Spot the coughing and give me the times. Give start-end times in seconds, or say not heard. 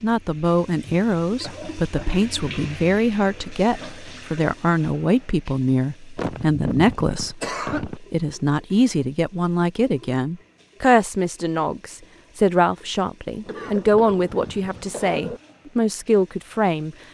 1.4-2.1, 6.2-8.0, 13.4-15.4.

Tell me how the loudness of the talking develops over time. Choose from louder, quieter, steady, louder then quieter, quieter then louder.
steady.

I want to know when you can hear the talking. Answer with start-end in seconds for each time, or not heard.
0.0-16.9.